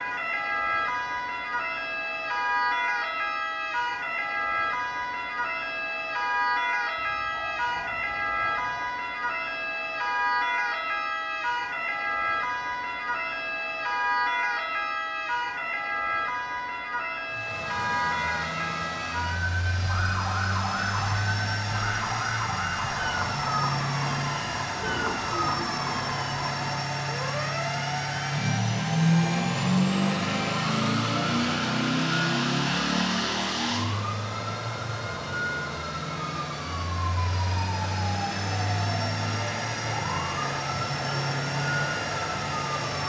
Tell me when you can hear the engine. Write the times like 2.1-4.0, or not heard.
17.2-43.0.